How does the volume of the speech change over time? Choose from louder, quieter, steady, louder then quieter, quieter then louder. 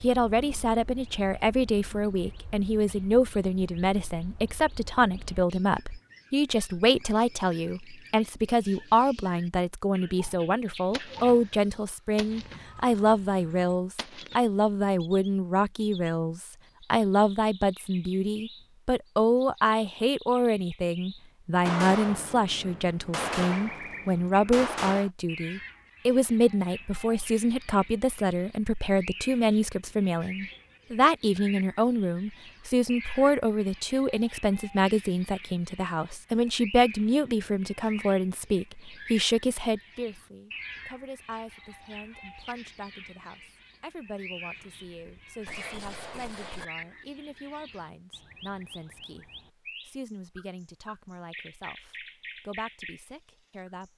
quieter.